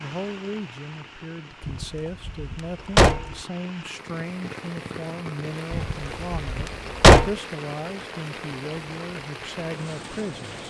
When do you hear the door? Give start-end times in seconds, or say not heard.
1.6-3.4, 5.7-7.3.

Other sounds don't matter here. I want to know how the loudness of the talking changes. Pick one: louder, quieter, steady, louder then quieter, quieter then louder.
steady.